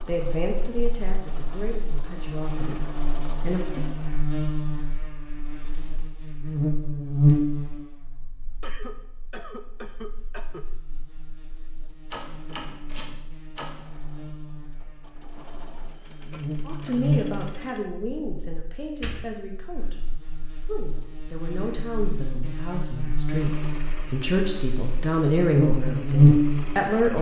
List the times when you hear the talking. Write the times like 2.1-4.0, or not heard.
0.1-3.9, 16.6-27.1.